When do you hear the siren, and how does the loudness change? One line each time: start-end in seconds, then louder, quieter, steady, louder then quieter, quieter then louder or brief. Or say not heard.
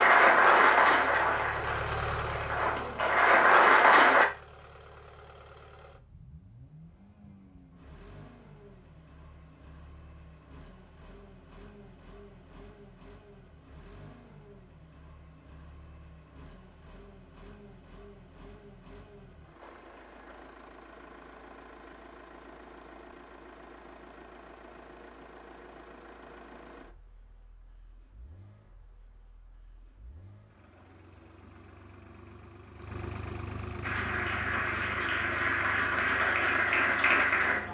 not heard.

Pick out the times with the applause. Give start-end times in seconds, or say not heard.
0.0-4.2, 33.8-37.6.